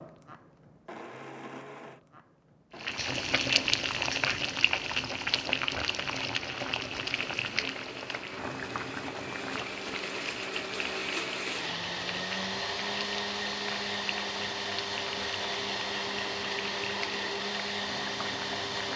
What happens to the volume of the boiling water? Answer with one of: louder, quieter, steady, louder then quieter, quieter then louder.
quieter.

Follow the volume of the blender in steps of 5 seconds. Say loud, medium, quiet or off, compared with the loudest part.
quiet, medium, loud, loud.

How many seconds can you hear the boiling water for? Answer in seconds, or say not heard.
16 s.